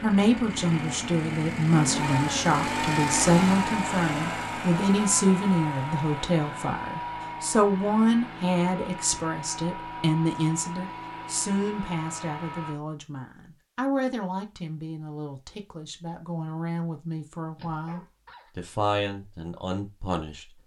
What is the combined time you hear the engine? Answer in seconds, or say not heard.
13 s.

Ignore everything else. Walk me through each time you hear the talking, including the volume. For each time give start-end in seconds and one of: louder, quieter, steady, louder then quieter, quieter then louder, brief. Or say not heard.
0.0-20.4 quieter.